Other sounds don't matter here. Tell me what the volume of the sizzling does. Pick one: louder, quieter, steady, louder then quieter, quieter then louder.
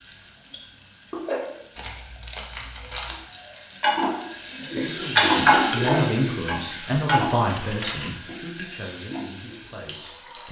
louder then quieter.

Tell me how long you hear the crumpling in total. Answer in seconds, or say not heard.
2 s.